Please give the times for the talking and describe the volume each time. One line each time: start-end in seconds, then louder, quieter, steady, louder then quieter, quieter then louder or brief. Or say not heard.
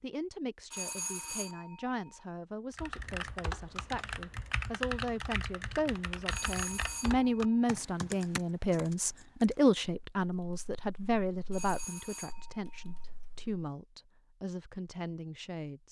0.0-15.8 louder then quieter.